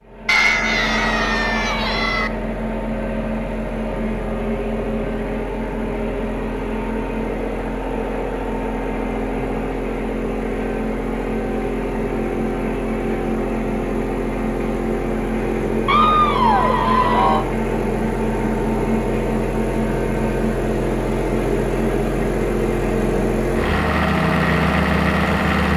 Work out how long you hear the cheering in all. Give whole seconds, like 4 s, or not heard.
4 s.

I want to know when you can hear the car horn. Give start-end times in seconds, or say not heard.
not heard.